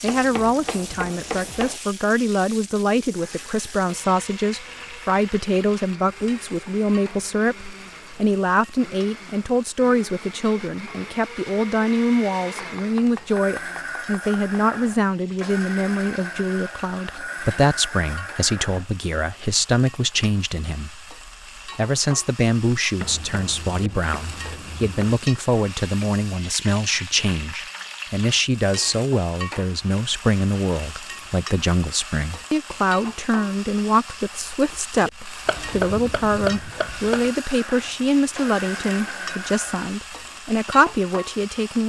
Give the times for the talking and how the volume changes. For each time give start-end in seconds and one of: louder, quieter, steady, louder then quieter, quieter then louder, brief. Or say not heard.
0.0-41.8 steady.